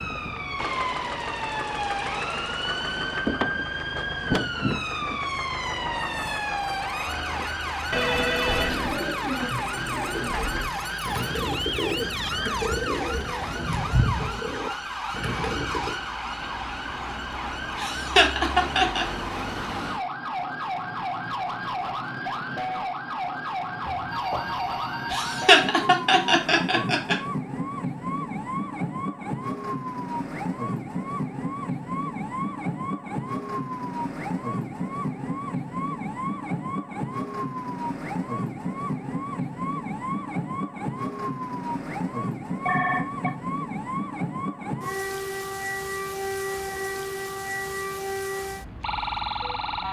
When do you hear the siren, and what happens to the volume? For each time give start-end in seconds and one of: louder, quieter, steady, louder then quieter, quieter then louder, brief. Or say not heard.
0.0-49.8 steady.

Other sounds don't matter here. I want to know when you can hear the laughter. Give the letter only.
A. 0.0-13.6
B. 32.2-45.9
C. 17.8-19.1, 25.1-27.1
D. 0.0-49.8
C.